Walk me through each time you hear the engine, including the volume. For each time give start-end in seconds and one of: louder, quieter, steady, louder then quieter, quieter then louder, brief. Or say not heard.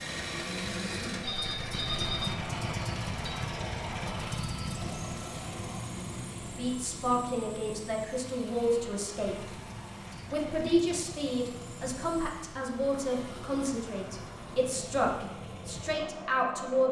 0.0-16.8 quieter.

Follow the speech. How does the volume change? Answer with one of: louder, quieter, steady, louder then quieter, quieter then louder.
steady.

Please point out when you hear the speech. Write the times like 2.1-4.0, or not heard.
6.5-9.6, 10.2-16.8.